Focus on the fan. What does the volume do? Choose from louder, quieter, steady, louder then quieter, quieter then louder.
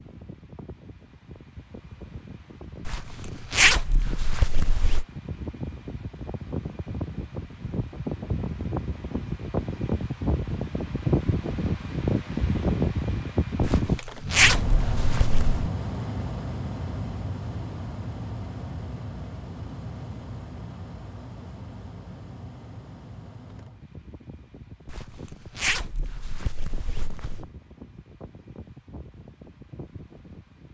louder then quieter.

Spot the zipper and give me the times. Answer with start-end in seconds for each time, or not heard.
2.9-5.0, 13.6-15.7, 24.9-27.4.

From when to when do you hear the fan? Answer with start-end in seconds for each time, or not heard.
0.0-30.7.